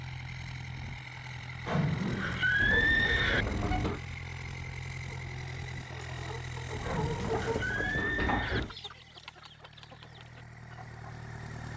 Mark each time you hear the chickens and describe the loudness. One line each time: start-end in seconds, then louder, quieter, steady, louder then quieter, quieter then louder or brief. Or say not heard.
5.0-11.2 louder then quieter.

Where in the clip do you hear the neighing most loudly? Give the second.
3 s.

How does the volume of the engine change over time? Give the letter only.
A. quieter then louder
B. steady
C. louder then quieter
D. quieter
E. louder
D.